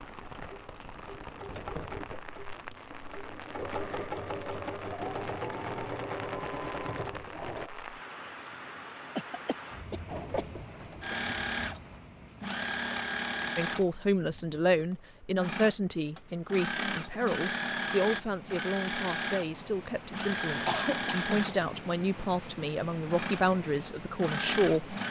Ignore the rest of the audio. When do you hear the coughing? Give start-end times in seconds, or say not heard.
9.2-10.4, 20.6-21.3.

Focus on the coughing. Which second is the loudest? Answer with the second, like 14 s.
21 s.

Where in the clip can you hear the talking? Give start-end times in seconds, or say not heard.
13.6-24.9.